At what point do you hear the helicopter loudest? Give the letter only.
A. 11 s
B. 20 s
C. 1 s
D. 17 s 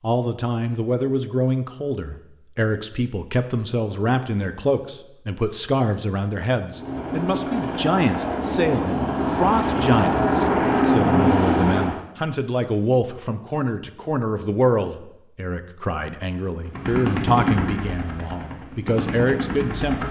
A.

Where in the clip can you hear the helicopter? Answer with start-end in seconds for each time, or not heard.
6.7-11.9, 16.6-20.0.